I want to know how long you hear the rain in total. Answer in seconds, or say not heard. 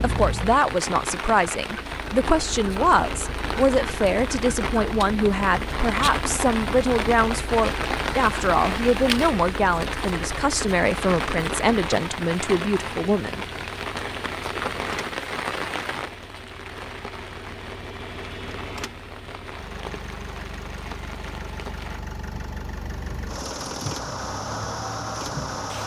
26 s.